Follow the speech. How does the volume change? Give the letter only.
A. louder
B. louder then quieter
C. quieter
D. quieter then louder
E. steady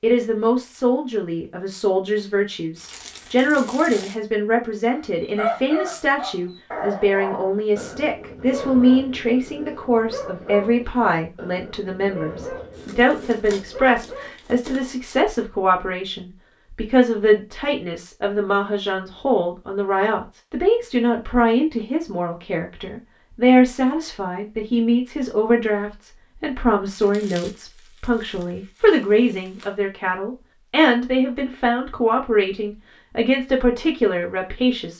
E.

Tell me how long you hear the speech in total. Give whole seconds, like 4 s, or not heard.
35 s.